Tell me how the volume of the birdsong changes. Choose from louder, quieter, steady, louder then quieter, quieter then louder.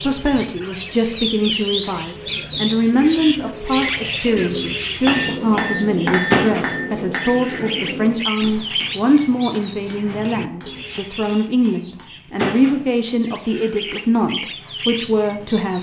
quieter then louder.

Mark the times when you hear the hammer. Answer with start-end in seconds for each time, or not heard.
5.0-12.1.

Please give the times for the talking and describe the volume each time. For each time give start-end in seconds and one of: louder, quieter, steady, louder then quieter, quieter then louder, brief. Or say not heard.
0.0-15.7 steady.